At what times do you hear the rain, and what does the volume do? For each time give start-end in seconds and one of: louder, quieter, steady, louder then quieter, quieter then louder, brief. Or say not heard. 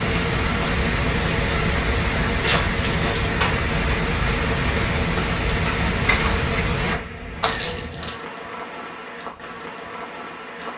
0.0-10.7 quieter.